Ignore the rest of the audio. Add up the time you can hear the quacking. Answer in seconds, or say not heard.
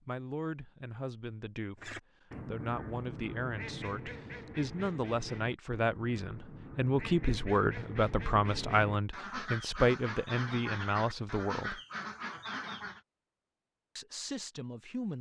11 s.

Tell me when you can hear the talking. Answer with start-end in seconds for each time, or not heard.
0.1-11.8, 13.9-15.1.